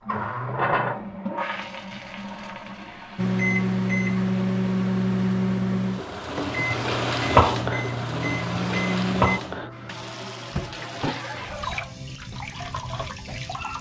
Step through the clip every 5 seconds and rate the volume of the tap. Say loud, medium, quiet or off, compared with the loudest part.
medium, loud, medium.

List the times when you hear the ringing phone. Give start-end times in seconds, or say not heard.
not heard.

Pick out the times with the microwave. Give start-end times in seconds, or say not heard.
3.1-9.4.